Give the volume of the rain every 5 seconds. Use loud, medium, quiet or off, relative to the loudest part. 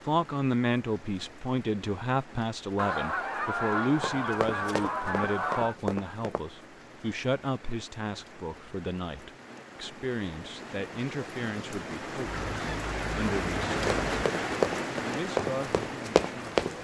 quiet, quiet, loud, loud.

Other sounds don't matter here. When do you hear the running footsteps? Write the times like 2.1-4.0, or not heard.
4.0-6.4, 13.8-16.8.